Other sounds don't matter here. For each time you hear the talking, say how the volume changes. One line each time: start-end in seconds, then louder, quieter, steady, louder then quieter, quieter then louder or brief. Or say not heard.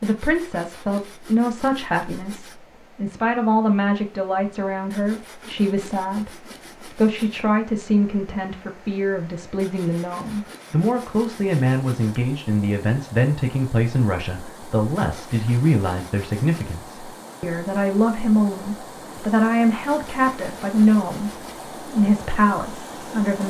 0.0-23.4 steady.